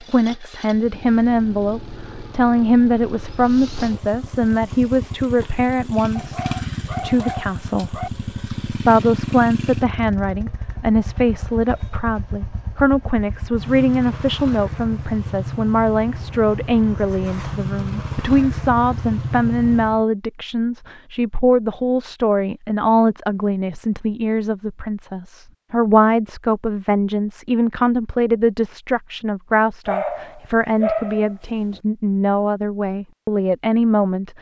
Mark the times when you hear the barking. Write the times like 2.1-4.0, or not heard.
6.2-8.1, 29.9-31.8.